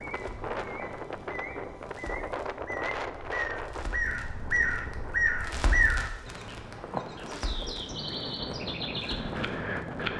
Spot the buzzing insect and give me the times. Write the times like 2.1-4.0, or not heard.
not heard.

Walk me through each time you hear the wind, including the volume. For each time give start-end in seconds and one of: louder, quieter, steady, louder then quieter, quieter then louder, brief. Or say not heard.
0.0-10.1 quieter then louder.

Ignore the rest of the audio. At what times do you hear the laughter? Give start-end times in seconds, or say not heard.
not heard.